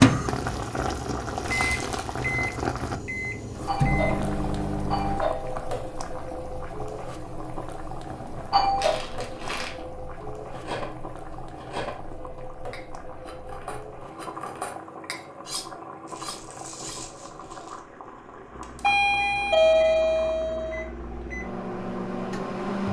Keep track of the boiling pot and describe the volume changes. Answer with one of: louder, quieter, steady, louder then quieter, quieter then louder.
quieter.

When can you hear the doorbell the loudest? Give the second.
20 s.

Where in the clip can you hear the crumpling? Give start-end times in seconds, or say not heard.
1.4-2.1, 8.8-9.8, 16.1-17.8.